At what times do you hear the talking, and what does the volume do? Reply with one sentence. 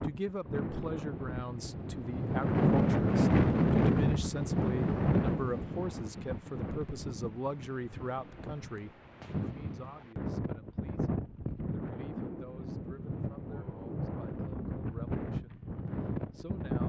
You can hear the talking from 0.0 to 16.8 s, getting quieter.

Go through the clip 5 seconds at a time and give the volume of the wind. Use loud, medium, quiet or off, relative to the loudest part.
loud, medium, medium, medium.